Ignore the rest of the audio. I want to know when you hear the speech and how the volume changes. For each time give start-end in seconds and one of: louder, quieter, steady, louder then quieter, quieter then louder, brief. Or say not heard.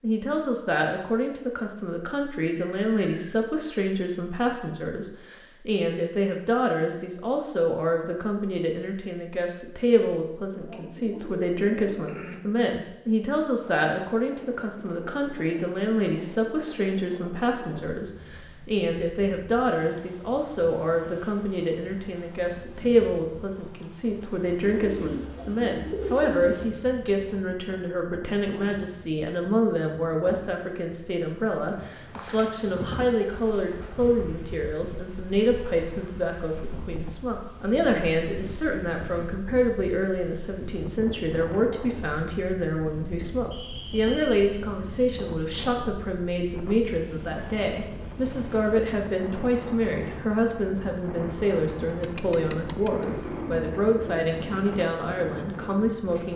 0.0-56.3 steady.